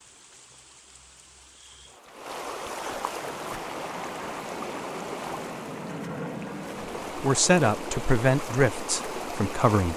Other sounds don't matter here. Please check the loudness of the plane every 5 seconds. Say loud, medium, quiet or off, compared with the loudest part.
medium, loud.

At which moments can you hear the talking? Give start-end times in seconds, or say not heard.
7.2-9.9.